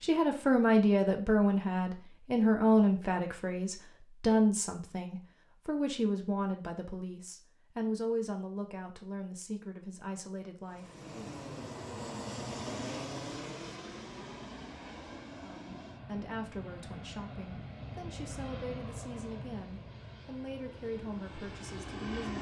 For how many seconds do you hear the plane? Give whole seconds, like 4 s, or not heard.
12 s.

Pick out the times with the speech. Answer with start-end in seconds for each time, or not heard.
0.0-11.3, 15.4-22.3.